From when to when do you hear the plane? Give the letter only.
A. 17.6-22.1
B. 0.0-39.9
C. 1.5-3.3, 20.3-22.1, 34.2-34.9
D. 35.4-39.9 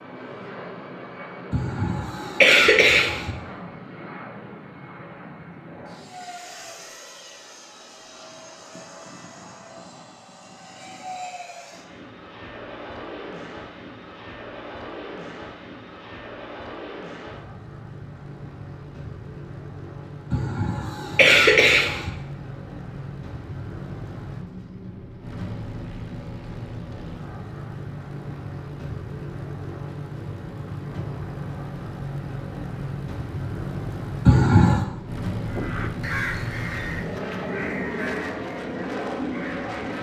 B.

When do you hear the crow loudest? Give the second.
36 s.